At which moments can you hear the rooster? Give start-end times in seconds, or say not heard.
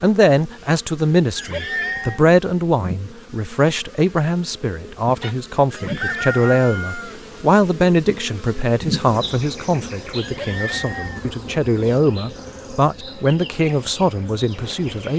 5.2-7.2.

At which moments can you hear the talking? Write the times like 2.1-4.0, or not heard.
0.0-15.1.